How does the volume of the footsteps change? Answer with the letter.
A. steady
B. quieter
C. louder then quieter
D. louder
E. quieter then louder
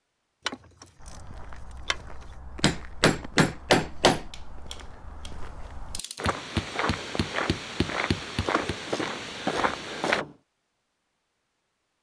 D.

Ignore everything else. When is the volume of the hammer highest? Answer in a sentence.
The volume of the hammer peaks at 4 seconds.